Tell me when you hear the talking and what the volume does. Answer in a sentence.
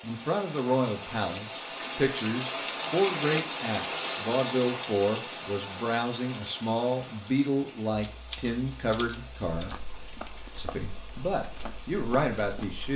The talking can be heard from 0.0 to 9.8 s, at a steady volume; and briefly from 10.6 to 12.9 s.